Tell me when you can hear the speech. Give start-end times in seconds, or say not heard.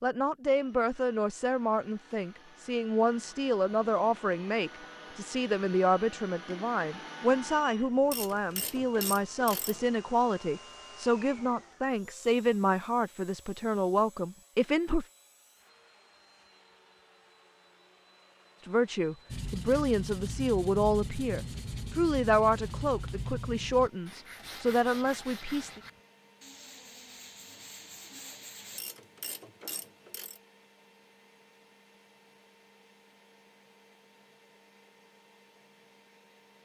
0.0-15.1, 18.6-25.8.